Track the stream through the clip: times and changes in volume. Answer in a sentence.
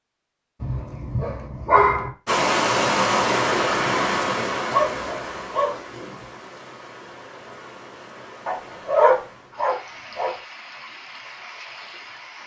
You can hear the stream from 2.2 to 12.4 s, getting quieter.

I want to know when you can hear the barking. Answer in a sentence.
The barking can be heard from 0.6 to 2.1 s, from 4.7 to 6.2 s and from 8.4 to 10.3 s.